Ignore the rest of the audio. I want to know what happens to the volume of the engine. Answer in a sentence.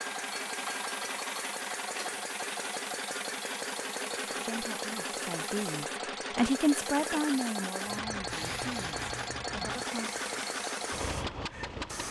The loudness of the engine stays about the same.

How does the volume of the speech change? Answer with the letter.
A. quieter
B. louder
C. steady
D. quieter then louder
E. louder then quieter
E.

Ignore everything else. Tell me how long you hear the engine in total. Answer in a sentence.
The engine can be heard for 12 seconds in total.